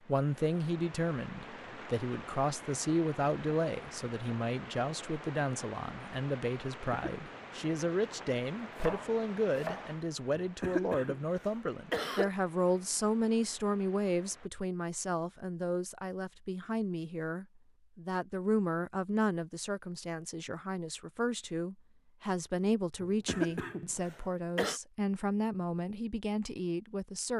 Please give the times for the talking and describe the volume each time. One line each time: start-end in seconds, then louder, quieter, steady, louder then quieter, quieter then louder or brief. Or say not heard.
0.1-27.3 steady.